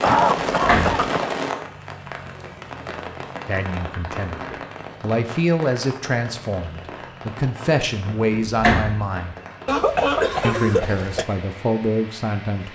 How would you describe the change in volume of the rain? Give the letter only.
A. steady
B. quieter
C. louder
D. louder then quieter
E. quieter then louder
B.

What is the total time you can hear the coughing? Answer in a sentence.
The coughing can be heard for 3 seconds in total.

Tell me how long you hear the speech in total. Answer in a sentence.
You can hear the speech for 8 seconds altogether.